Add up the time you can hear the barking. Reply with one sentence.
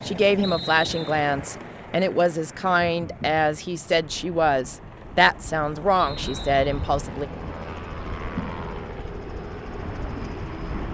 The barking can't be heard in this clip.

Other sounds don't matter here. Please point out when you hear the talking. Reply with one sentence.
The talking can be heard from 0.0 to 7.2 s.